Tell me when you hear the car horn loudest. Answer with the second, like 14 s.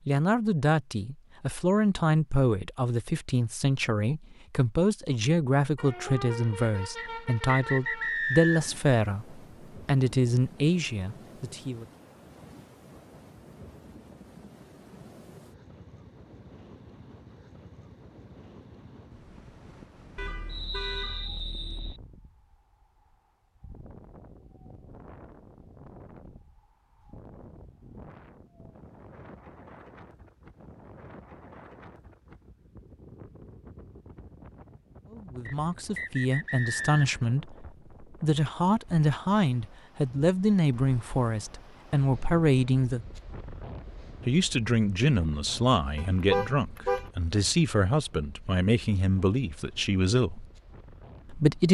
46 s.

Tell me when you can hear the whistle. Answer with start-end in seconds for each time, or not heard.
7.0-8.8, 20.4-22.0, 35.5-37.2.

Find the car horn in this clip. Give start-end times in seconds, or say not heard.
5.8-8.2, 20.1-21.9, 46.0-47.1.